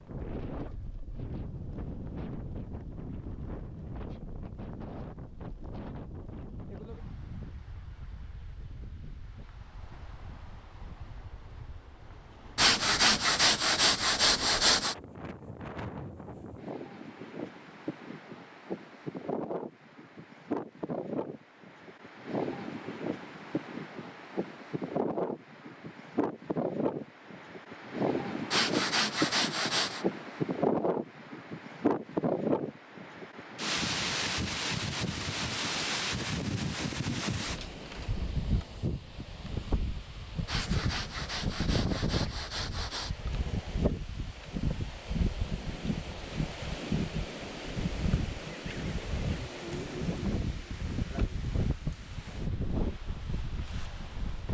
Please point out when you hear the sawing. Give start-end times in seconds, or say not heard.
12.6-14.9, 28.5-30.1, 40.5-43.1.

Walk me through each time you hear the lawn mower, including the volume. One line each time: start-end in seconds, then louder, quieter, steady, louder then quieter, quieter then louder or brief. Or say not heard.
not heard.